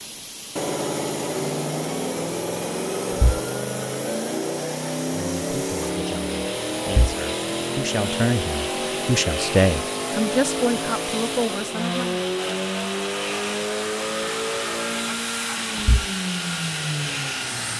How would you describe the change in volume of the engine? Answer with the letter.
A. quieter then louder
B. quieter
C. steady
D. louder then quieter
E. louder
C.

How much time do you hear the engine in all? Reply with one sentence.
You can hear the engine for 18 seconds altogether.